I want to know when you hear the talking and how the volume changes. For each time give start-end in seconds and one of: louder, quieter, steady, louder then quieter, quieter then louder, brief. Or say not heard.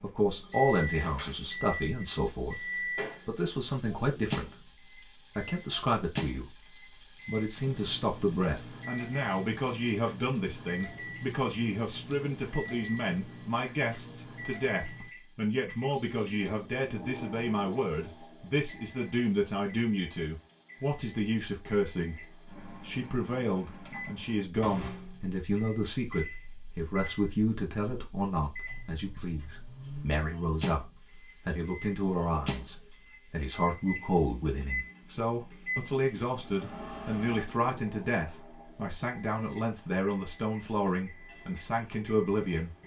0.0-2.6 brief
3.2-4.7 brief
5.3-42.7 steady.